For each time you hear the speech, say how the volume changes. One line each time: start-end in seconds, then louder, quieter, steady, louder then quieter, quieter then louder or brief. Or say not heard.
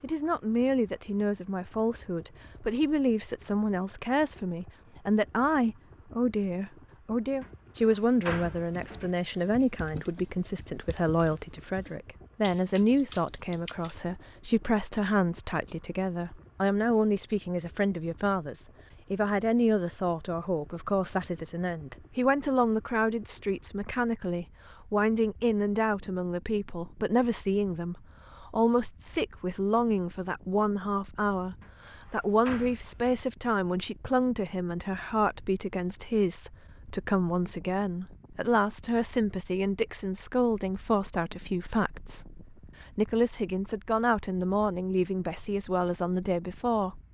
0.0-47.0 steady.